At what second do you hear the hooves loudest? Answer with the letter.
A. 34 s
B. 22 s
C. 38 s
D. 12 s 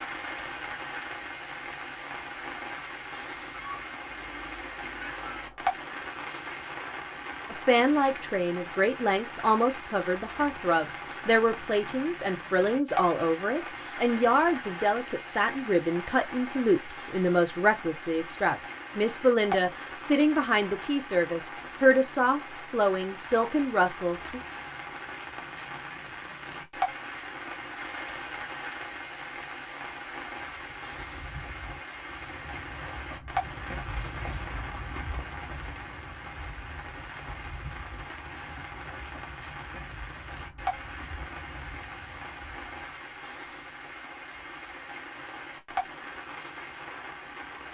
A.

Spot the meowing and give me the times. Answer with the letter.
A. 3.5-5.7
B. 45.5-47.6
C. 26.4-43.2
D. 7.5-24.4
A.